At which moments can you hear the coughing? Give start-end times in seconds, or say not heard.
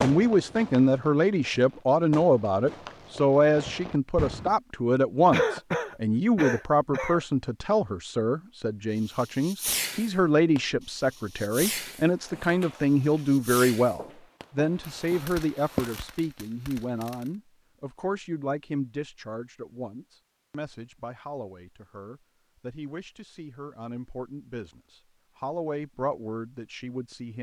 5.3-7.2.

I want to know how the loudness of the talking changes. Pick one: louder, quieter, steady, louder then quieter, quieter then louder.
quieter.